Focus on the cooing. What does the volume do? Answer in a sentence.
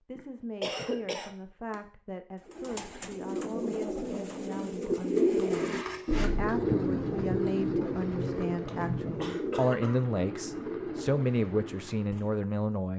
The volume of the cooing goes up, then down.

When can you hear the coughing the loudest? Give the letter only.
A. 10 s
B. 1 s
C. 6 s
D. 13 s
B.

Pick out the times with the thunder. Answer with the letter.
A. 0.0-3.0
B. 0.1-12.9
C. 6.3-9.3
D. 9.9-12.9
C.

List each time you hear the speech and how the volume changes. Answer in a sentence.
The speech can be heard from 0.1 to 12.9 s, getting louder.